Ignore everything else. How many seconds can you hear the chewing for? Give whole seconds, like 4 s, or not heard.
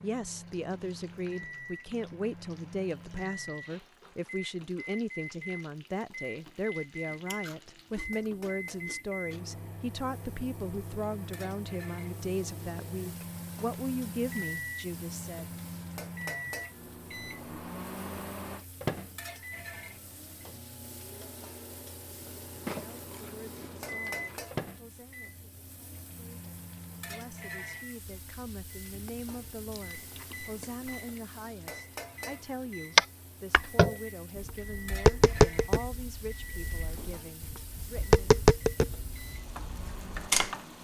6 s.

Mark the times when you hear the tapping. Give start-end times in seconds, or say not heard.
33.0-40.5.